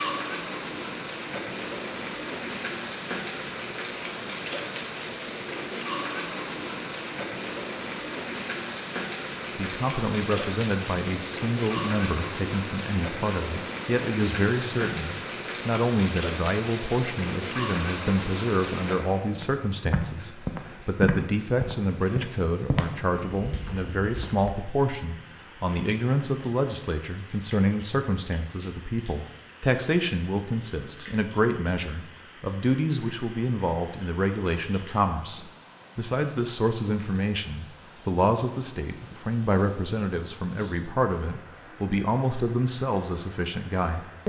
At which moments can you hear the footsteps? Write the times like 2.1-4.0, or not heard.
19.4-24.6.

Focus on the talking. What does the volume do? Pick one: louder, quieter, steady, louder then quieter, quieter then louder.
steady.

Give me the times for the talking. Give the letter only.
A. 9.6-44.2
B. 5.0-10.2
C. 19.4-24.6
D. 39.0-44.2
A.